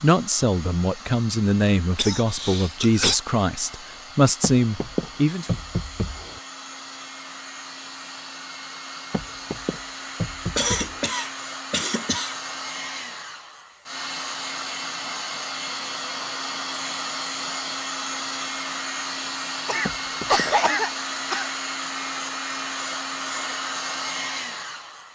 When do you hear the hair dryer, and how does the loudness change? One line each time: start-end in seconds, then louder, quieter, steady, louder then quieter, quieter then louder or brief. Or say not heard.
0.0-25.1 louder.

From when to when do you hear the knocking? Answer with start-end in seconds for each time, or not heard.
4.4-6.4, 9.1-11.1, 19.9-20.4.